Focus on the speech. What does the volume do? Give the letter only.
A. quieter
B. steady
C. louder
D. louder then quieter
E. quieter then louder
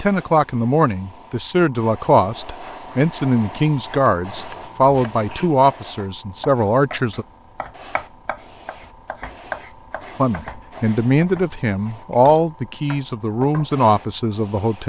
B.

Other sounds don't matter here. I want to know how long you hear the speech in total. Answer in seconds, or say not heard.
12 s.